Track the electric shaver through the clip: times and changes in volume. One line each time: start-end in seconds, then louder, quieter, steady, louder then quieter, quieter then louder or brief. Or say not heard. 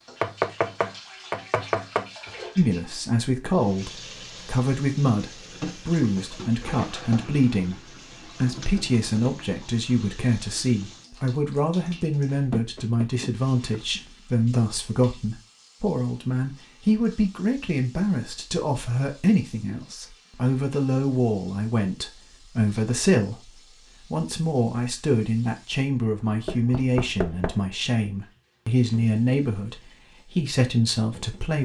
not heard.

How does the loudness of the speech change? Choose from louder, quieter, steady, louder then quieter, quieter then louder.
steady.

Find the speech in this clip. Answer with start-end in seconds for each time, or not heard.
2.5-31.5.